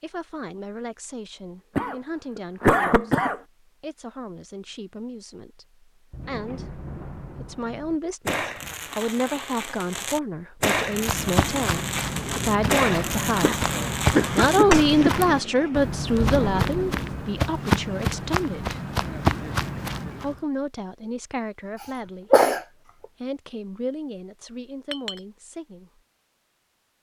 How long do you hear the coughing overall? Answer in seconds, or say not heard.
4 s.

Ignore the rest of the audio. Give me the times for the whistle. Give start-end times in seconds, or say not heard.
not heard.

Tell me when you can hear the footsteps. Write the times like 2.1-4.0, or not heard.
10.8-20.4.